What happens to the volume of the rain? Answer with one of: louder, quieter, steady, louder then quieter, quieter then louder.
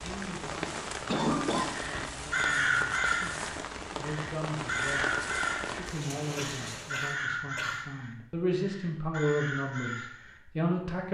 steady.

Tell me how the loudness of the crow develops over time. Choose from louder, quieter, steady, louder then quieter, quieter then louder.
quieter.